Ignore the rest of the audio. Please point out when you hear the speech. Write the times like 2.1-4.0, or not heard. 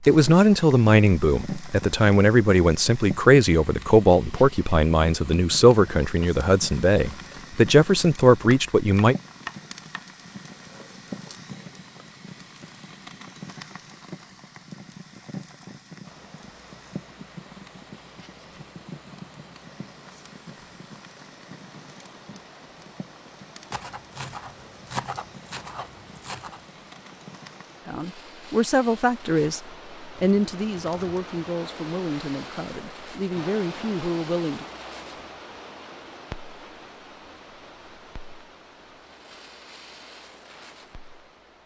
0.1-9.2, 27.9-34.6.